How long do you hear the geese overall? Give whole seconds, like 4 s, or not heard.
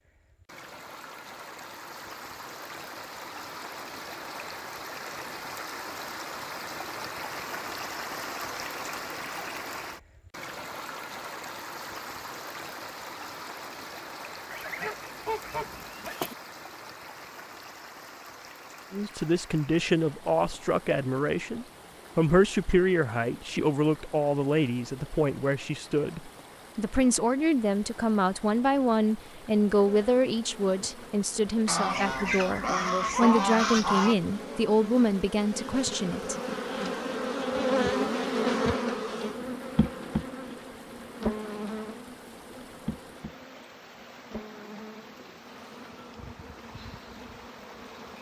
4 s.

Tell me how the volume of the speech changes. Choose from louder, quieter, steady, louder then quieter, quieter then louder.
steady.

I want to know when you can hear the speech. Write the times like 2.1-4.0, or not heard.
18.9-36.4.